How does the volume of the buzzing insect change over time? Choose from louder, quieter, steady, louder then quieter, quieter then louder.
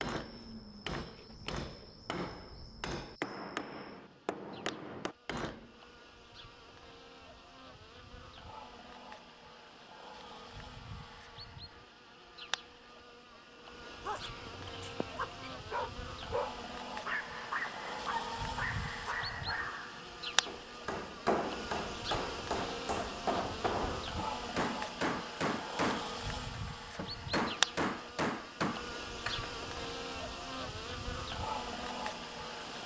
louder.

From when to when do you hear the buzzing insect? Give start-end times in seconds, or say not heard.
0.1-32.8.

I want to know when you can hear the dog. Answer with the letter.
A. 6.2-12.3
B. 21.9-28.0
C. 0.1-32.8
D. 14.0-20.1
D.